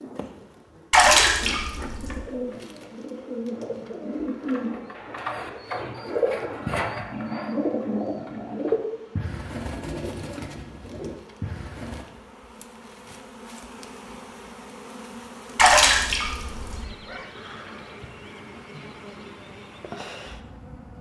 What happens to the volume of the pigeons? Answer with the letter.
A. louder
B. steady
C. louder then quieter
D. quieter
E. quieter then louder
C.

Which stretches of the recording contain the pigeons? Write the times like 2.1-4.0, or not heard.
1.0-12.1.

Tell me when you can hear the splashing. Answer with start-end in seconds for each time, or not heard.
0.9-2.2, 15.6-16.9.